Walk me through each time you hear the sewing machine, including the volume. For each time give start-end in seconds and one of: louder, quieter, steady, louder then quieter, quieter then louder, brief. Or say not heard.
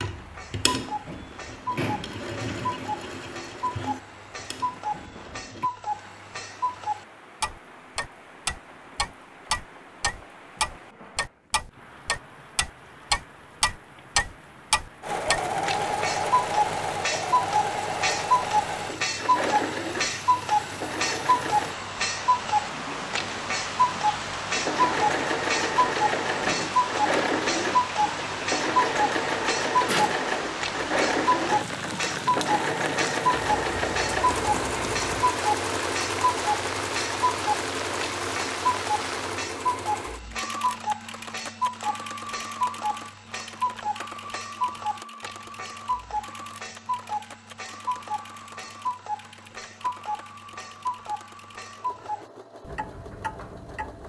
0.0-5.7 quieter
15.0-21.8 quieter
24.4-54.0 quieter.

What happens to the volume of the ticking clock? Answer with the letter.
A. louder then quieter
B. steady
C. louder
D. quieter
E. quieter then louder
A.